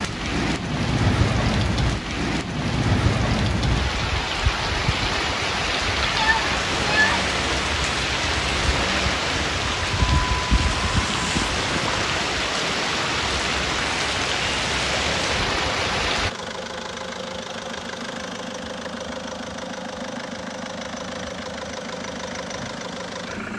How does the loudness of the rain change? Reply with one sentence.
The volume of the rain stays about the same.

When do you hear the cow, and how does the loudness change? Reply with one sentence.
You can't hear the cow here.